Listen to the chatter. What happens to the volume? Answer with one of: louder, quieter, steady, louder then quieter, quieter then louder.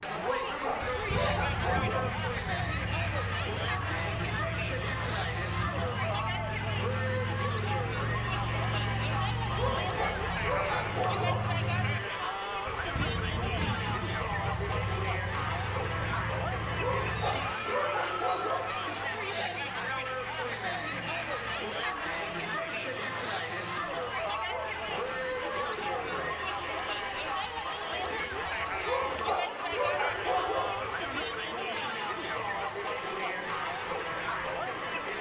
steady.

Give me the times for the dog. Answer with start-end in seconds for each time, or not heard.
0.1-2.1, 9.4-11.4, 16.7-18.7, 24.4-26.2, 28.7-30.8.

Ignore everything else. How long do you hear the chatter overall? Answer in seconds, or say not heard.
35 s.